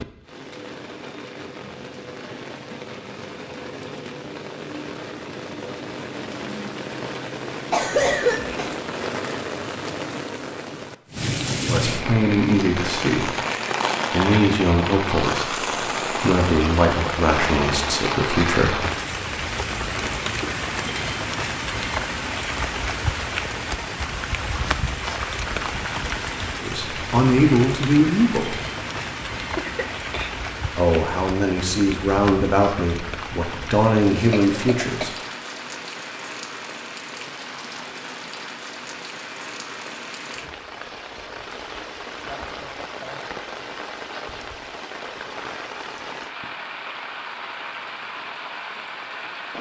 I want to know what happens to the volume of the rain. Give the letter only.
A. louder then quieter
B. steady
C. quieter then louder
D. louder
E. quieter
A.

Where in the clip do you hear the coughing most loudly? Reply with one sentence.
The loudest moment of the coughing is at 8 seconds.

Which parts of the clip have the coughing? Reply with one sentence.
The coughing can be heard from 7.7 to 8.8 s, from 29.6 to 30.3 s and from 34.3 to 35.1 s.